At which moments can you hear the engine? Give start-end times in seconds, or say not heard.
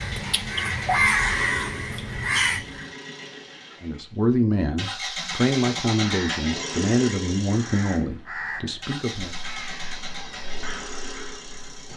0.0-11.9.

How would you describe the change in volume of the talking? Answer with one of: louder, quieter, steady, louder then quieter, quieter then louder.
quieter.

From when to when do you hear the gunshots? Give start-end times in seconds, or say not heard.
not heard.